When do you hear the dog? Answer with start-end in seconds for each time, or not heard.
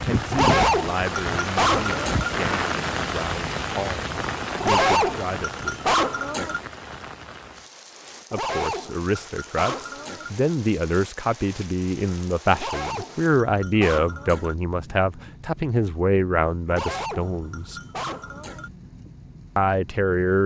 0.3-2.3, 4.6-6.6, 8.3-10.3, 12.6-14.6, 16.6-18.7.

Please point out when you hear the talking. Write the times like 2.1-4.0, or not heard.
0.0-6.0, 8.3-17.8, 19.6-20.4.